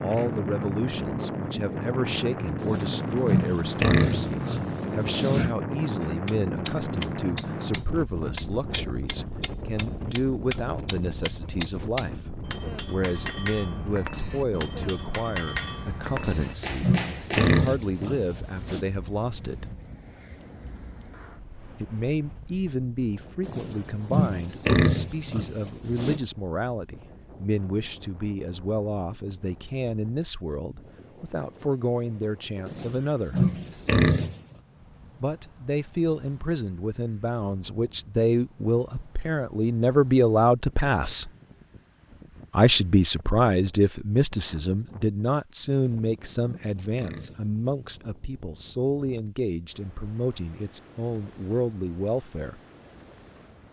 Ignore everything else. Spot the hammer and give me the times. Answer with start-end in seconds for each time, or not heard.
6.2-18.1.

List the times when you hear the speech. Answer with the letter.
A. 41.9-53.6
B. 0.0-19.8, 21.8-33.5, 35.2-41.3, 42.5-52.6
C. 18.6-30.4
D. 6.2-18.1
B.